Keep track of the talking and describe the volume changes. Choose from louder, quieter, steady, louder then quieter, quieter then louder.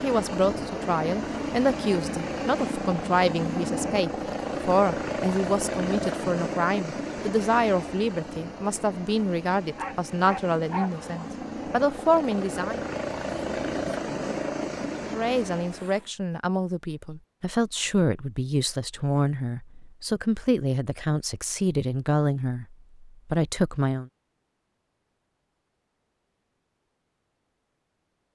steady.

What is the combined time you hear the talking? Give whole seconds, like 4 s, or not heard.
22 s.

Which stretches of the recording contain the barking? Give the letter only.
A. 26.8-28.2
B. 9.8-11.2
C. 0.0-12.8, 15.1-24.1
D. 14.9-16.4
B.